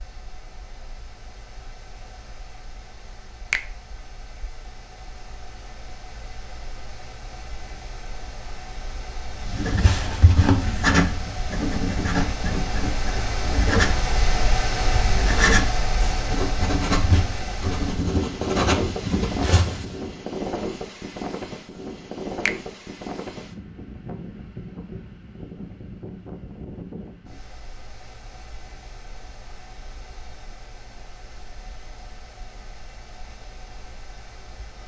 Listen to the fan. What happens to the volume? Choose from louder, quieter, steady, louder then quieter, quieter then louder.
louder then quieter.